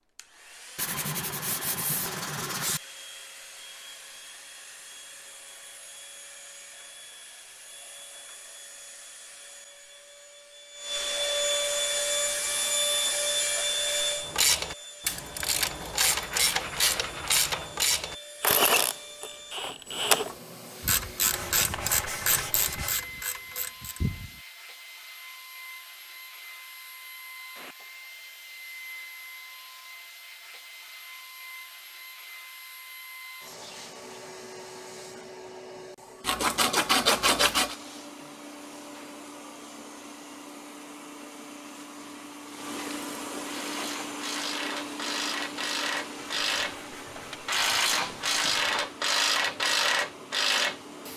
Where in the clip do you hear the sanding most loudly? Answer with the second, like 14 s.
37 s.